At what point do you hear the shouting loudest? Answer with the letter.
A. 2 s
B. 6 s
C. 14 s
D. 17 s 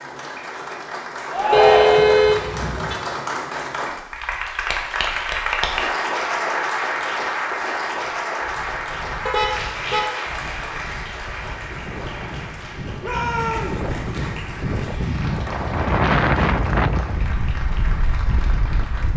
A.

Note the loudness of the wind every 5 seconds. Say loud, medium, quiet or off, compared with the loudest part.
off, quiet, medium, loud.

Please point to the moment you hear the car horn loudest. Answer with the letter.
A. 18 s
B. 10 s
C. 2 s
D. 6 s
C.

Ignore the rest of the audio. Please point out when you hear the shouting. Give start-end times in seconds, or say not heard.
1.3-2.2, 13.0-13.8.